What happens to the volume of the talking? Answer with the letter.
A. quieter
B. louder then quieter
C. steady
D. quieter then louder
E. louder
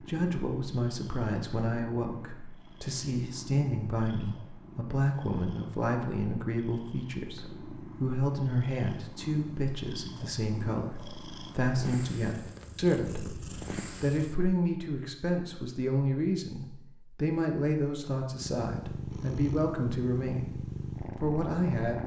C.